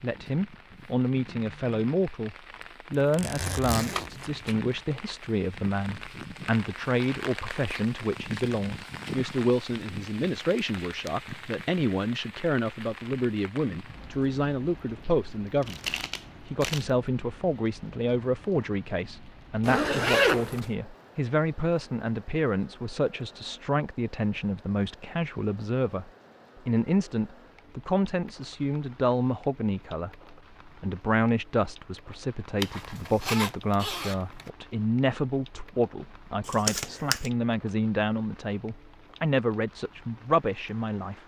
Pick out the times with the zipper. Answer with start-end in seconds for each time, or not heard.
3.0-4.2, 19.6-20.7, 32.6-34.5.